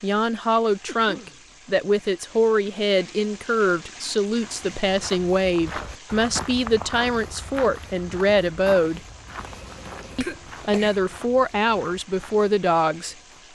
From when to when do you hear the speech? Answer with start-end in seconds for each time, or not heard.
0.0-9.0, 10.2-13.5.